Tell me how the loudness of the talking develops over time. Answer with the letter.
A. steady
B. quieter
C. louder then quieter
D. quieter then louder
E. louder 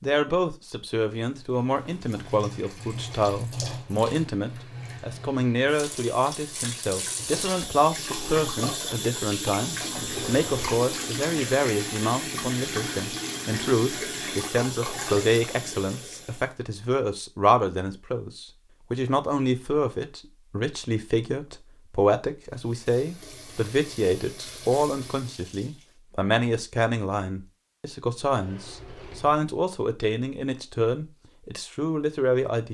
A.